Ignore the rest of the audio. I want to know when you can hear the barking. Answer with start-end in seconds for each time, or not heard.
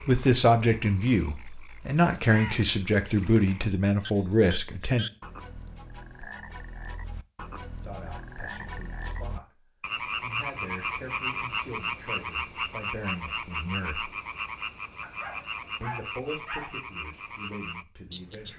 15.0-16.8.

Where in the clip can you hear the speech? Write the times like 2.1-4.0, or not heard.
0.1-5.0, 7.8-14.1, 15.8-18.5.